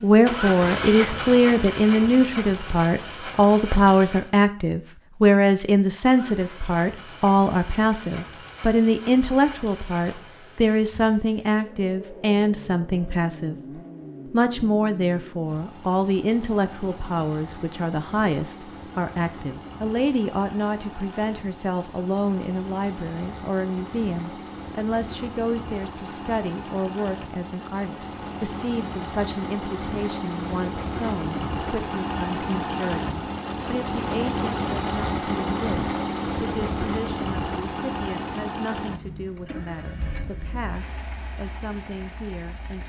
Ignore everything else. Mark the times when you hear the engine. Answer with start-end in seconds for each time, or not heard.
0.0-4.3, 6.0-42.8.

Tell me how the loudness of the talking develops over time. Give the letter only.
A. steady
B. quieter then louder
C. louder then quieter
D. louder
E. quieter
E.